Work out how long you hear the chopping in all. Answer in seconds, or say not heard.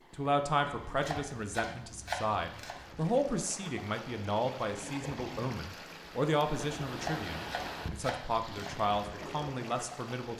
4 s.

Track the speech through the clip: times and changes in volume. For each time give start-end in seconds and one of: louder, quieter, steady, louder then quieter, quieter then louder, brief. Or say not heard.
0.1-10.3 steady.